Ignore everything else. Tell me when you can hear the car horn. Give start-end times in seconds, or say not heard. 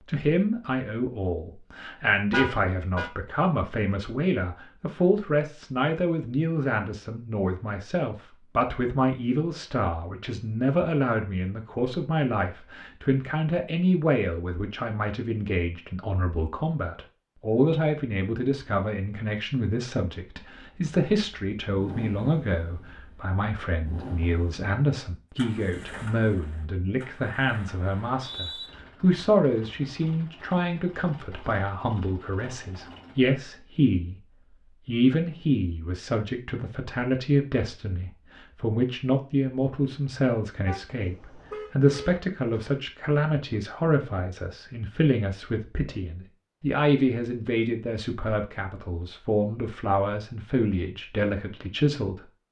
2.3-3.1, 40.6-42.8.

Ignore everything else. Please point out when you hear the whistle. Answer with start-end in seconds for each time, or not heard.
27.9-28.7.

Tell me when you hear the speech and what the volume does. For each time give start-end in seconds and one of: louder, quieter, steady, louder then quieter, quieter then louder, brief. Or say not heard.
0.1-34.2 steady
34.9-52.2 steady.